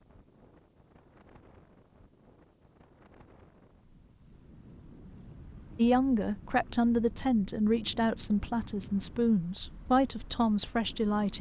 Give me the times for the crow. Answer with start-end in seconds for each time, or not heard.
not heard.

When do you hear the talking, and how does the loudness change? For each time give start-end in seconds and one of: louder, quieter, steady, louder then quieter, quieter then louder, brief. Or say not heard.
5.8-11.3 steady.